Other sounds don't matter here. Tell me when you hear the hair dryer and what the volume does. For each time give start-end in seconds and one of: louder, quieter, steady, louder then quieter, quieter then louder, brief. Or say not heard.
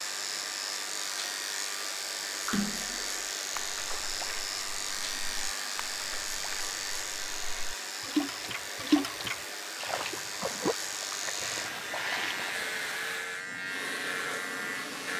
0.0-15.1 steady.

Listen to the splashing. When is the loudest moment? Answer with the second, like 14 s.
9 s.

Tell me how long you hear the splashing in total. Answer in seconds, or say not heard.
10 s.